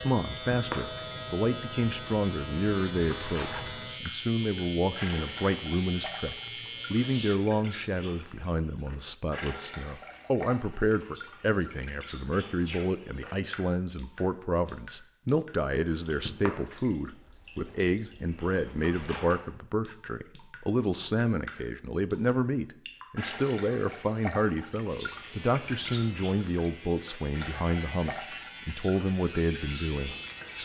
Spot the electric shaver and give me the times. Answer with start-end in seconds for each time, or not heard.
0.0-7.3, 24.9-30.6.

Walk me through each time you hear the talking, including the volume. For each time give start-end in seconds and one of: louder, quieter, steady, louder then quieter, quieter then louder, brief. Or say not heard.
0.0-30.6 steady.